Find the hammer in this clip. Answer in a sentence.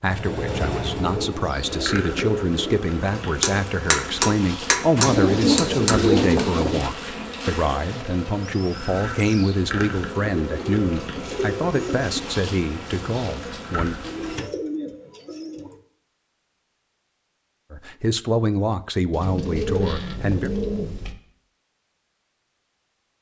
You can hear the hammer from 3.4 to 6.0 s.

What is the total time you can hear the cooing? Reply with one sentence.
The cooing can be heard for 11 seconds in total.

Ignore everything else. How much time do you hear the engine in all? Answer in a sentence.
You can hear the engine for 2 seconds altogether.